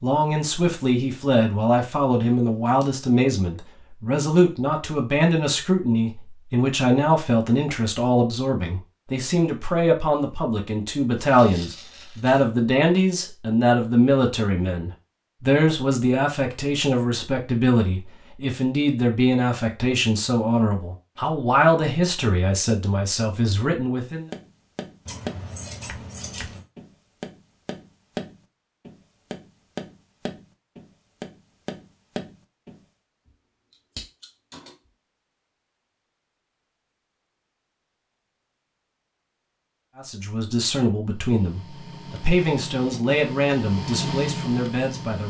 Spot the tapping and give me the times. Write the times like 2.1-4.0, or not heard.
24.3-32.8.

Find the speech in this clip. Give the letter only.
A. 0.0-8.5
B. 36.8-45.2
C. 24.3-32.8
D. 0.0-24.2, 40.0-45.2
D.